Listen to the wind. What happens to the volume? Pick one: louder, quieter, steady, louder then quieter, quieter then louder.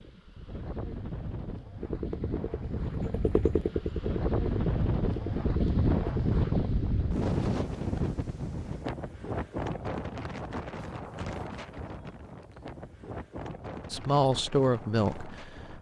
louder then quieter.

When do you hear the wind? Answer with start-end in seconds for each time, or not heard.
0.0-15.7.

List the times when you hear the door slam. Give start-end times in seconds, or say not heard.
not heard.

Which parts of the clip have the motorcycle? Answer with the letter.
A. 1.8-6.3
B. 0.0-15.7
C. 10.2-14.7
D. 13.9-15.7
A.